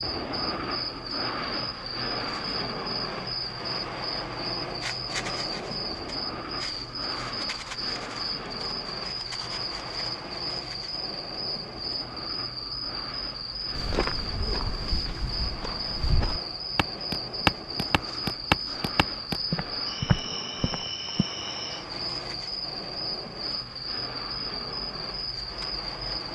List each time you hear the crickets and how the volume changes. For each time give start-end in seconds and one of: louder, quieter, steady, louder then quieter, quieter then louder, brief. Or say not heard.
0.0-26.3 steady.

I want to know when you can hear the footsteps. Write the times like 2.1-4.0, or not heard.
13.8-21.2.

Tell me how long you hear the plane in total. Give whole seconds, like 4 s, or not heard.
26 s.